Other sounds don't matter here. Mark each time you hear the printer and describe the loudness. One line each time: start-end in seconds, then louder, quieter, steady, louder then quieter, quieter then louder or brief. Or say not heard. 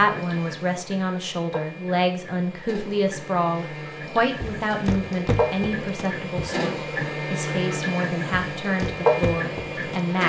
0.0-10.2 louder.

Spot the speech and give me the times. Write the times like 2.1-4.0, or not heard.
0.0-10.2.